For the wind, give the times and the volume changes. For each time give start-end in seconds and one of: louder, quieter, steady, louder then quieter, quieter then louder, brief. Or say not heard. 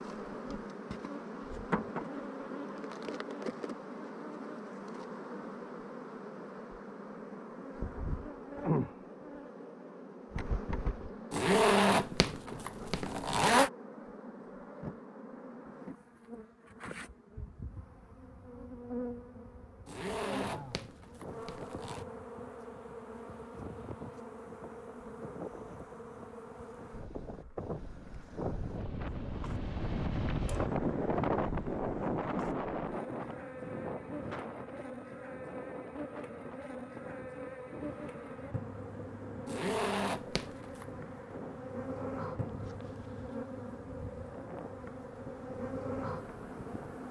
20.0-47.0 louder then quieter.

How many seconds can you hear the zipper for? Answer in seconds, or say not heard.
6 s.